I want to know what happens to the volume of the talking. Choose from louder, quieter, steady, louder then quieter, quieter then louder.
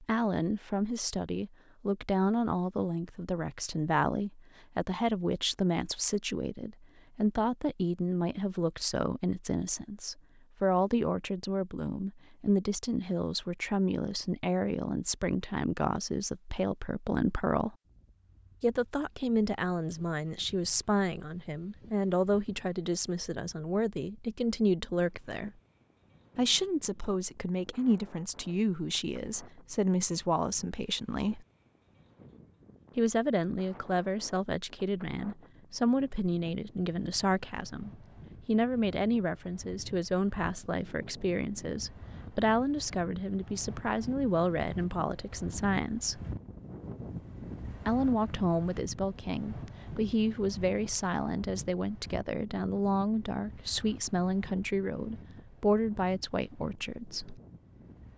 steady.